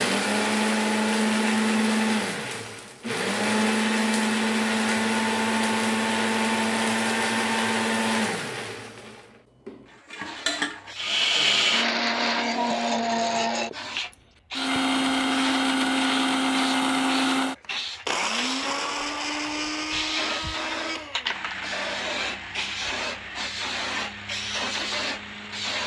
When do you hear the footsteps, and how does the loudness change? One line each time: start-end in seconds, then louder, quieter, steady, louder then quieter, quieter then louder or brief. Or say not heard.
not heard.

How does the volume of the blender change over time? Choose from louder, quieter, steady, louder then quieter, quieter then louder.
quieter.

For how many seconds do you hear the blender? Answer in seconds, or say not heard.
26 s.